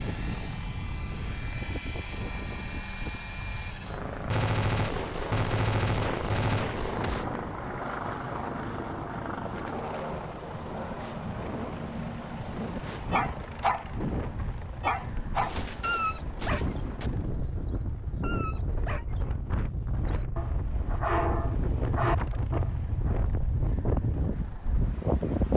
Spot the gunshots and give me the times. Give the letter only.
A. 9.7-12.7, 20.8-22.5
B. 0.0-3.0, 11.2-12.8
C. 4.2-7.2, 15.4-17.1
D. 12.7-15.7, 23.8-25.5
C.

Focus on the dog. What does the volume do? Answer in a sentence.
The loudness of the dog goes down, then up.